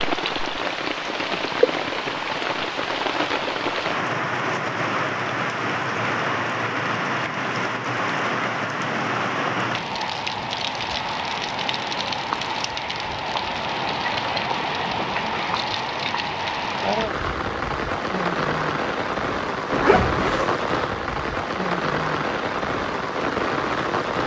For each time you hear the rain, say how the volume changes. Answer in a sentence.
You can hear the rain from 0.0 to 24.2 s, at a steady volume.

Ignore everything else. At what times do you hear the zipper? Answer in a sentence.
The zipper can be heard from 19.7 to 20.6 s.